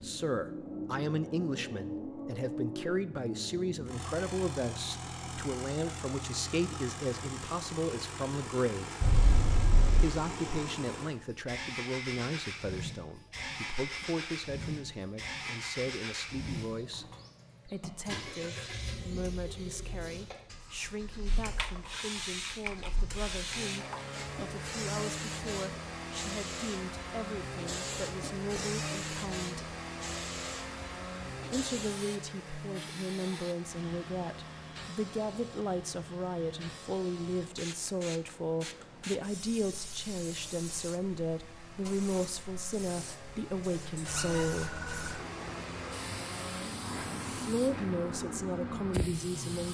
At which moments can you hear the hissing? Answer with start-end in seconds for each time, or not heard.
20.6-49.6.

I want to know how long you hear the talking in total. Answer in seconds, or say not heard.
44 s.